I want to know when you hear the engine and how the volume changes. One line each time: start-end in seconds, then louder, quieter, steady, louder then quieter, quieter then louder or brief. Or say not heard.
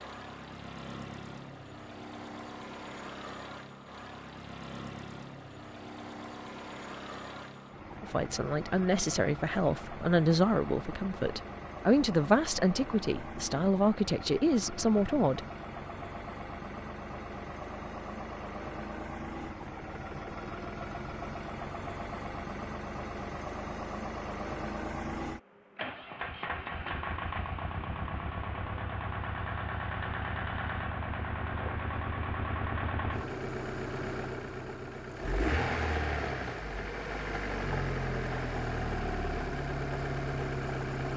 0.0-41.1 louder.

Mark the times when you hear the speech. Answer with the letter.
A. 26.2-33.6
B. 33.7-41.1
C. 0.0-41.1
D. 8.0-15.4
D.